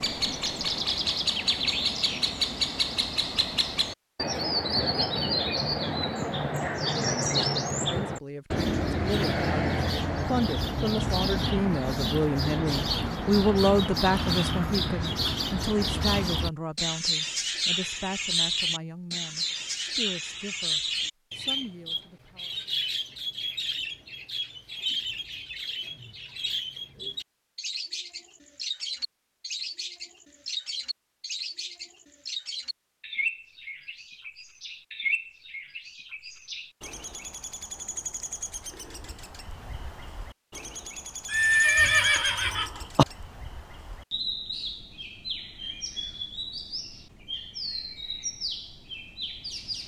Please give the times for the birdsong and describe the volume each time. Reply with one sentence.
The birdsong can be heard from 0.0 to 49.8 s, getting quieter.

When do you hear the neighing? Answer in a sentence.
The neighing can be heard from 41.2 to 43.0 s.